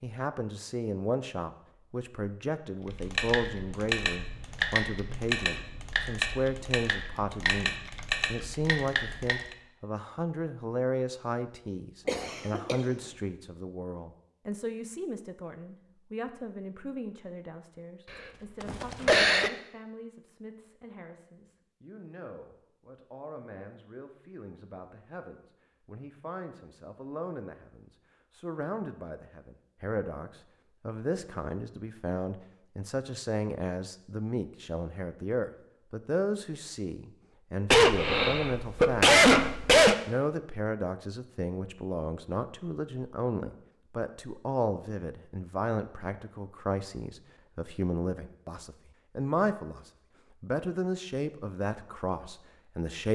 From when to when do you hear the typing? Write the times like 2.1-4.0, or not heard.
2.9-9.6.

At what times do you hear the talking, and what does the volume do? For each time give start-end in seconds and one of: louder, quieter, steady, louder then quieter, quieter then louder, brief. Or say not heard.
0.0-53.1 quieter then louder.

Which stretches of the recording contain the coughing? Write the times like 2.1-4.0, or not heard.
12.1-12.8, 18.1-19.5, 37.7-40.0.